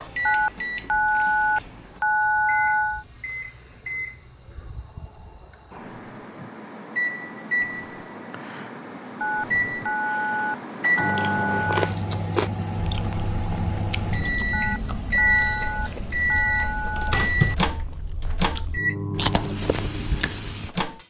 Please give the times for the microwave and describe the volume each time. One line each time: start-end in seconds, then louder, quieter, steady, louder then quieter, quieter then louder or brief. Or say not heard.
0.0-21.0 louder.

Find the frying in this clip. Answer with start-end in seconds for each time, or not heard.
19.4-21.0.